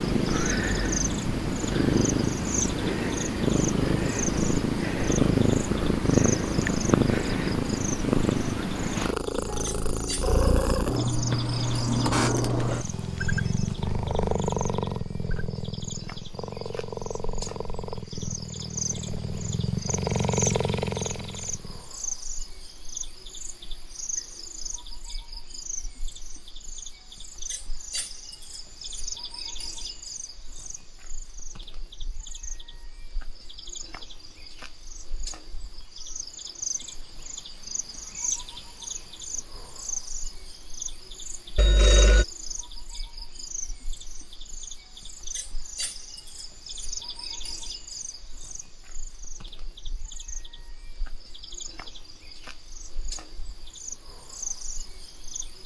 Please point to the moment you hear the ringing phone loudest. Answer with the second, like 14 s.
42 s.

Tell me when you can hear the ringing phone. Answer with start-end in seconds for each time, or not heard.
12.9-14.1, 41.5-42.2.